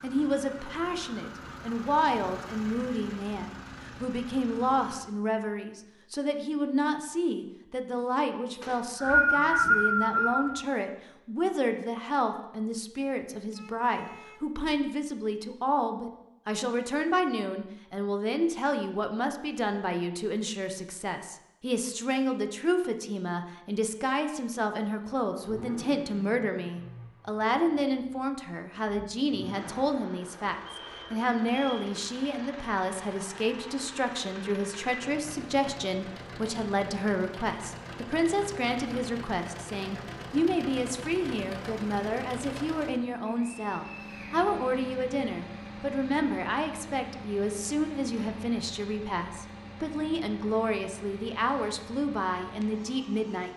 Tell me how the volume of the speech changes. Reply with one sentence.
The volume of the speech stays about the same.